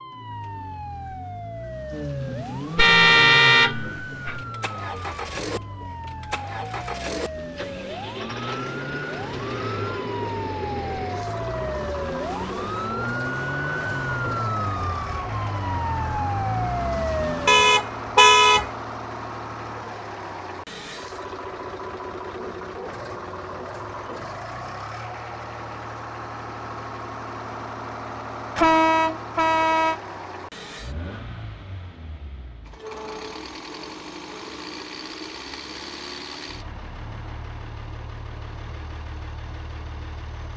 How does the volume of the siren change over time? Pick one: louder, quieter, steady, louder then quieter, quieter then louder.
louder.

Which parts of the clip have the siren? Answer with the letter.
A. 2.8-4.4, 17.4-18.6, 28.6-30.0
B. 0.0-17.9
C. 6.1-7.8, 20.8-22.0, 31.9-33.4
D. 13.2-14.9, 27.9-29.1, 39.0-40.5
B.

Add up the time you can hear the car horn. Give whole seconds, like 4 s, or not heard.
4 s.